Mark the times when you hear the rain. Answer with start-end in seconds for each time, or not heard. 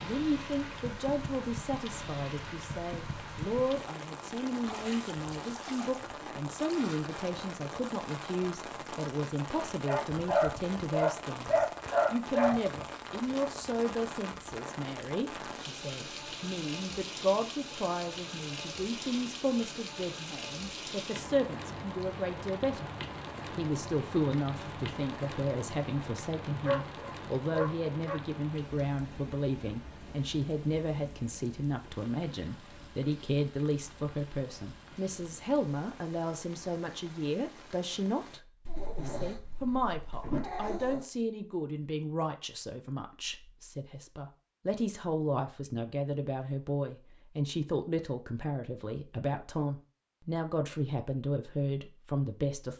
0.0-38.4.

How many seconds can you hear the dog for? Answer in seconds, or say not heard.
7 s.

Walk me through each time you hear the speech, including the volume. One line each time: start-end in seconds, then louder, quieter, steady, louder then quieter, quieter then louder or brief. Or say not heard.
0.0-22.9 steady
23.6-52.7 steady.